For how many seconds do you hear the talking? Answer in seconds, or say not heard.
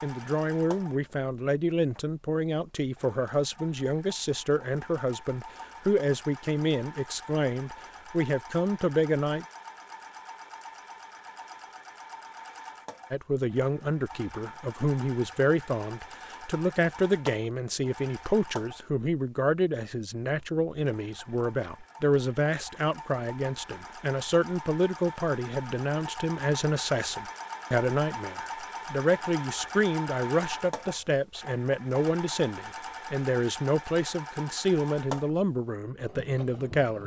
33 s.